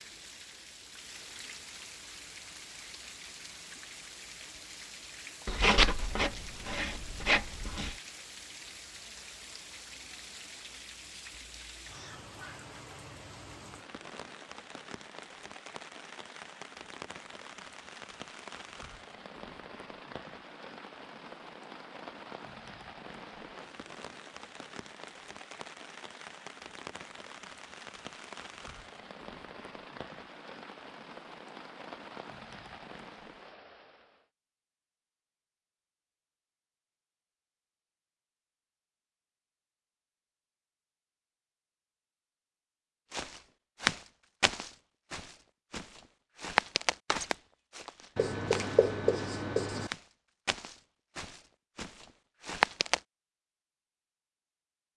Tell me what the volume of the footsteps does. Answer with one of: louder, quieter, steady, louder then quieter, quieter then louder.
quieter then louder.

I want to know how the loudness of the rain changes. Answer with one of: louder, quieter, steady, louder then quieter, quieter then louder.
steady.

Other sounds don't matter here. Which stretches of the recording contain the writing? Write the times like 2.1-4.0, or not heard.
5.5-8.0, 48.1-49.9.